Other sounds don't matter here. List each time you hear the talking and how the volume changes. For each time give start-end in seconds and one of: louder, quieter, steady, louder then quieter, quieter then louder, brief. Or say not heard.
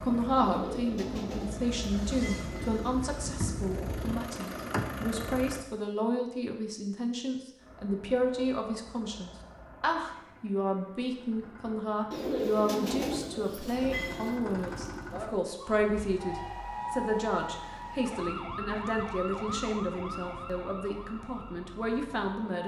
0.0-22.6 steady.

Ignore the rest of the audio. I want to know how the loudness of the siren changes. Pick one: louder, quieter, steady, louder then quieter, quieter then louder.
quieter.